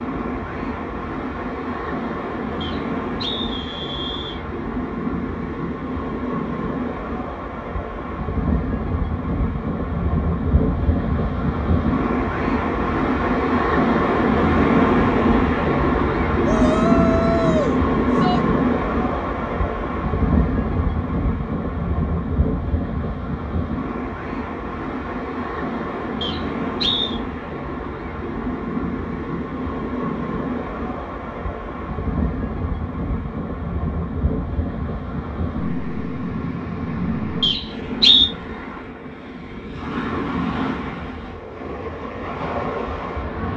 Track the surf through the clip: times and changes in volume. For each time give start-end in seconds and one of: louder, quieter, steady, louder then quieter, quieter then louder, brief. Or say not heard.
0.0-43.5 louder then quieter.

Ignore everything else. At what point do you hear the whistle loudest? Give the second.
38 s.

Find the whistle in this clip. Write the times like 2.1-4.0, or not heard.
2.6-4.4, 26.2-27.2, 37.4-38.3.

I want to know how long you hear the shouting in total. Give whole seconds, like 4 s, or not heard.
2 s.